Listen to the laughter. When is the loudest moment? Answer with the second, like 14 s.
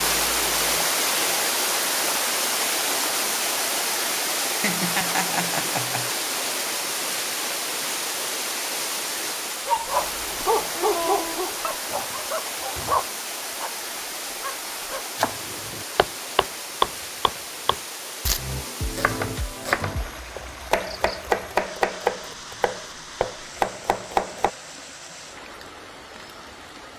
5 s.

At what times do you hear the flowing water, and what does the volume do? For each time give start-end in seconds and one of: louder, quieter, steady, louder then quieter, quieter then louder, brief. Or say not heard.
0.0-26.9 quieter.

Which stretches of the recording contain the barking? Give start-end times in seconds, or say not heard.
9.7-15.1.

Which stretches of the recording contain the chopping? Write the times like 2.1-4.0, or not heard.
15.2-24.5.